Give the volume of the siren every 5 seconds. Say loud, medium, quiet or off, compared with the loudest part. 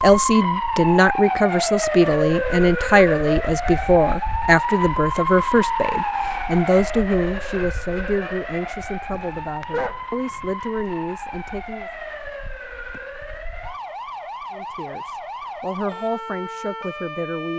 loud, loud, medium, medium.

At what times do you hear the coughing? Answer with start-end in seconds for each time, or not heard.
not heard.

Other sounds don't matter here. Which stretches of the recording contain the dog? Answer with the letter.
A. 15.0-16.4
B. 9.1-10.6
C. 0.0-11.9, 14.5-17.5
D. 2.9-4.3
B.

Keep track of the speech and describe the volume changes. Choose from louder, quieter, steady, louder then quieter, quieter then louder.
quieter.